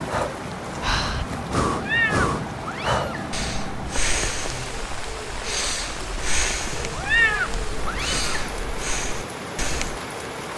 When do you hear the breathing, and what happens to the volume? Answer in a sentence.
You can hear the breathing from 0.1 to 10.0 s, getting quieter.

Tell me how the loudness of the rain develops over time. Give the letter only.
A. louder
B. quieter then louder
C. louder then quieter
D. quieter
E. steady
E.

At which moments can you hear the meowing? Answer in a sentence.
You can hear the meowing from 1.8 to 3.3 s and from 6.7 to 8.5 s.